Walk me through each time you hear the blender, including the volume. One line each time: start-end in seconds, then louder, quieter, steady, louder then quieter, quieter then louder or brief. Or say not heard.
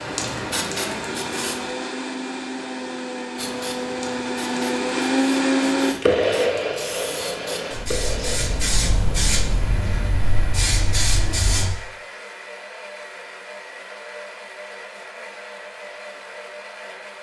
0.0-17.1 louder then quieter.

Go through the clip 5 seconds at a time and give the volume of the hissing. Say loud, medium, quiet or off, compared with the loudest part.
medium, loud, loud, off.